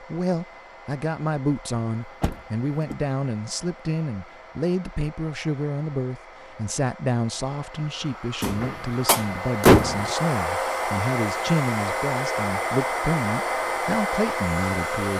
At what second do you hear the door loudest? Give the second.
10 s.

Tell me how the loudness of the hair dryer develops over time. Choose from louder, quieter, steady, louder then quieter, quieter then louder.
louder.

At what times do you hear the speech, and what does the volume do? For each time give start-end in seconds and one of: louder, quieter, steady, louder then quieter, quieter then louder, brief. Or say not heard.
0.0-15.1 steady.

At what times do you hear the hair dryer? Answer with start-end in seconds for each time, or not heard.
0.0-15.1.